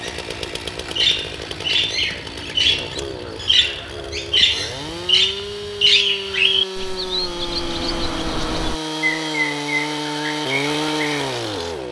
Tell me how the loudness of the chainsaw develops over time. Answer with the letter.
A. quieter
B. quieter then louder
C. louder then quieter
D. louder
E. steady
D.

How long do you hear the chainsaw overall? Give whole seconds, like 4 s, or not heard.
12 s.